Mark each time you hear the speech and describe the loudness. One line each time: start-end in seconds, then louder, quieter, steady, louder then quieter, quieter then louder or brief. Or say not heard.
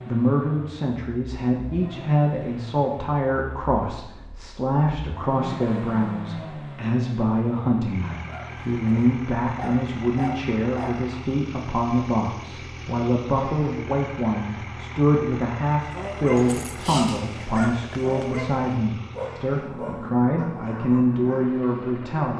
0.1-22.3 steady.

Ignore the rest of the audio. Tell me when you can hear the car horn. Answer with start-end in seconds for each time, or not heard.
not heard.